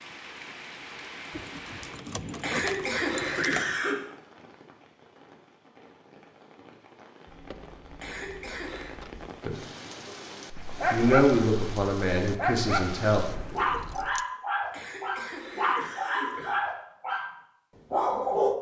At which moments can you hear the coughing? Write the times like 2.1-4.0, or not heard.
2.4-4.0, 8.0-8.9, 14.7-16.6.